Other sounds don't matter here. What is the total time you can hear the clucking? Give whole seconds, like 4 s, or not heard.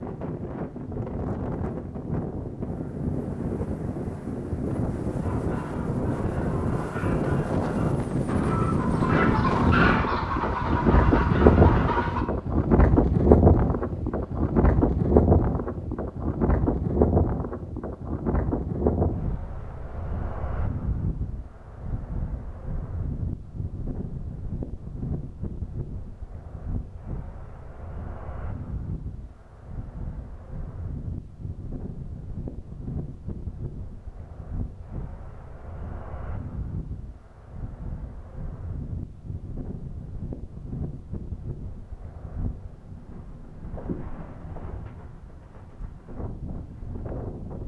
7 s.